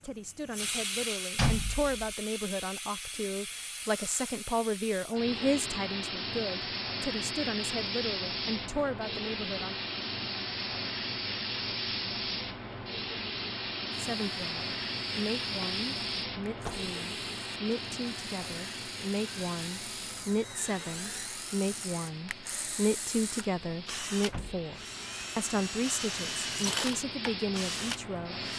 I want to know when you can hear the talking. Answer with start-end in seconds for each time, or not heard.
0.0-9.8, 13.9-28.4.